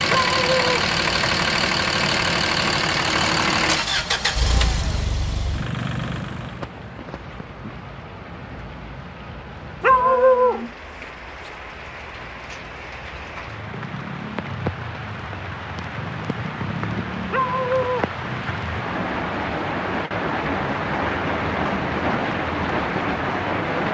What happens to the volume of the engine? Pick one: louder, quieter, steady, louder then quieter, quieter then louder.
quieter.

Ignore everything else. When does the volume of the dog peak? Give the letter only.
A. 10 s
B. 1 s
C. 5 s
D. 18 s
A.